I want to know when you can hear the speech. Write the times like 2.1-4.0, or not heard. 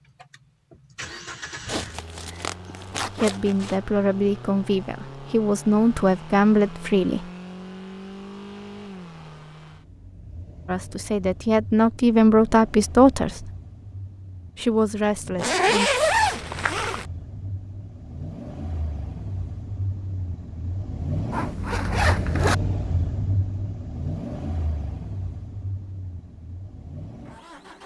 3.1-7.2, 10.7-13.5, 14.6-15.9.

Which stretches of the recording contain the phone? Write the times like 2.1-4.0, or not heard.
not heard.